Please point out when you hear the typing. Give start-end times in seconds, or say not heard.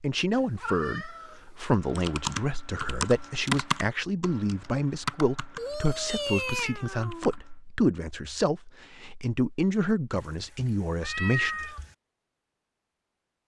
1.9-7.5.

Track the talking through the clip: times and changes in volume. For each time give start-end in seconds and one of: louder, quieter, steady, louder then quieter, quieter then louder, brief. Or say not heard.
0.0-11.7 steady.